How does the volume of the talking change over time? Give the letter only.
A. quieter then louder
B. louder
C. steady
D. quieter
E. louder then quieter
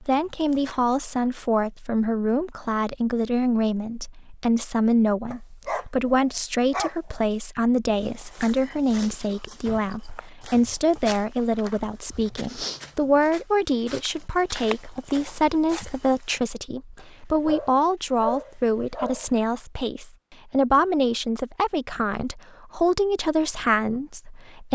C.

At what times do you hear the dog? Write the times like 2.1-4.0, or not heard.
5.3-7.2, 16.9-19.2.